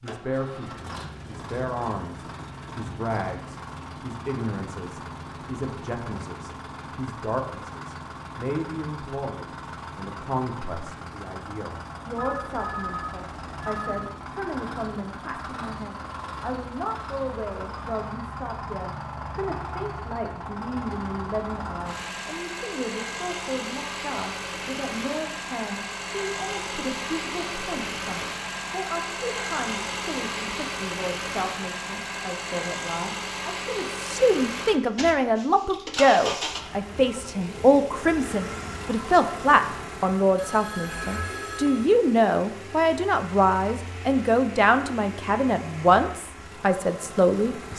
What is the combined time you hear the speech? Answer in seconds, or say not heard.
48 s.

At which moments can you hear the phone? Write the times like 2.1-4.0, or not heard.
12.2-14.2, 40.4-42.0.